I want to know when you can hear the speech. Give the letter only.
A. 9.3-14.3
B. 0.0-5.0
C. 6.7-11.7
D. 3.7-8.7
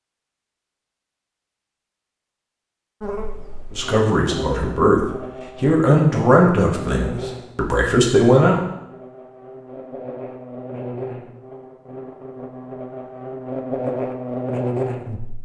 D.